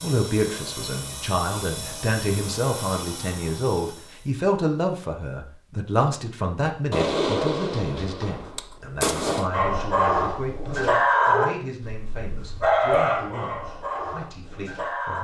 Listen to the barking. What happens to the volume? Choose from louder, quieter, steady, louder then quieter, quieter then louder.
louder then quieter.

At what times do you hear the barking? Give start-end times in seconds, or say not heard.
9.5-15.1.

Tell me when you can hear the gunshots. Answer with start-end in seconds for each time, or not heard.
6.9-9.5.